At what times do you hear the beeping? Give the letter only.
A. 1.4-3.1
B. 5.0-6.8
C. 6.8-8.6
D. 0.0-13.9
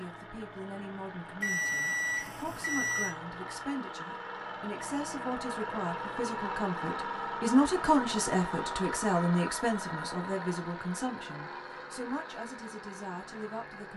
A.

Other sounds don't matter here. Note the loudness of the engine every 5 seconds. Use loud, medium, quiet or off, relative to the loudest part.
medium, loud, medium.